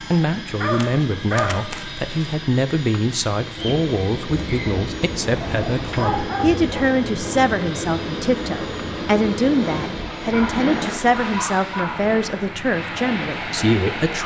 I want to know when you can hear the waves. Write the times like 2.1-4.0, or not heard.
3.5-14.2.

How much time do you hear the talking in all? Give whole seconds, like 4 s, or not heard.
14 s.